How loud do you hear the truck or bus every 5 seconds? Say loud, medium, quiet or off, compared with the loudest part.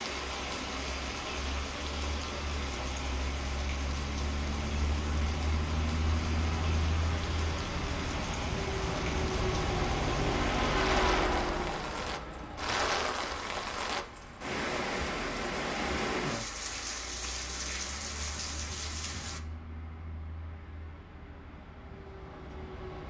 medium, loud, loud, quiet, quiet.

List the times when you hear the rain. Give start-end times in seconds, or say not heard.
0.0-19.4.